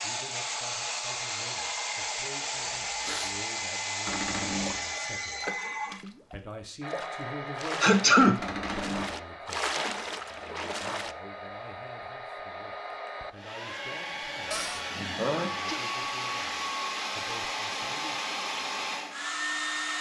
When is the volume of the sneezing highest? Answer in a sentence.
The loudest moment of the sneezing is at 8 seconds.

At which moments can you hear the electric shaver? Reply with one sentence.
You can't hear the electric shaver here.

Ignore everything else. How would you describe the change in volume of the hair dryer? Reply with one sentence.
The volume of the hair dryer goes down, then up.